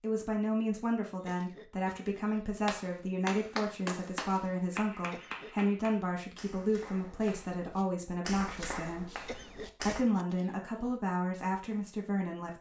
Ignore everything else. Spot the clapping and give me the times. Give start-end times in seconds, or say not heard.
2.6-10.1.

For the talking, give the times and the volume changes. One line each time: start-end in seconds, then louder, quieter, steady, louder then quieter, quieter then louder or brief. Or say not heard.
0.0-9.1 steady
9.8-12.5 brief.